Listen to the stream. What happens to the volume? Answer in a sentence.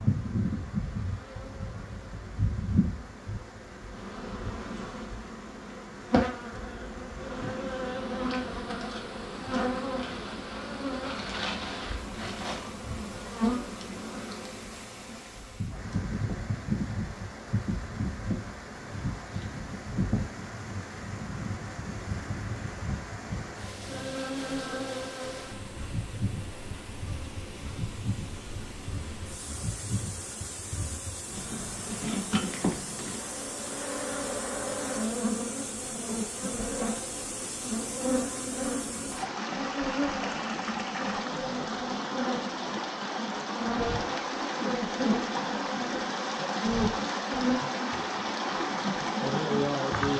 The loudness of the stream goes up.